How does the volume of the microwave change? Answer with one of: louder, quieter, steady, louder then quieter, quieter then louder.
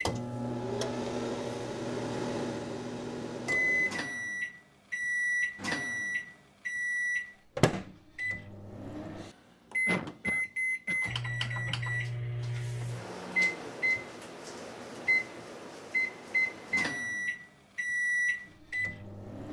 steady.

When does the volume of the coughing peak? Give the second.
10 s.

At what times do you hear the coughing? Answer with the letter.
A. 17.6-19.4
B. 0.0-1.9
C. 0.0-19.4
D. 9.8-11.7
D.